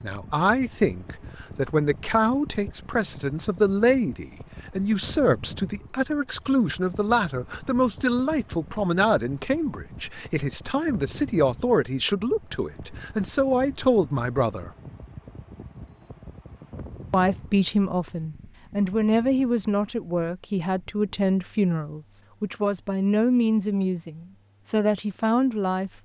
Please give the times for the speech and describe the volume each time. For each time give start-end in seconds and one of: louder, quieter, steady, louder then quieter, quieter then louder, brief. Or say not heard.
0.0-14.7 steady
17.1-25.9 steady.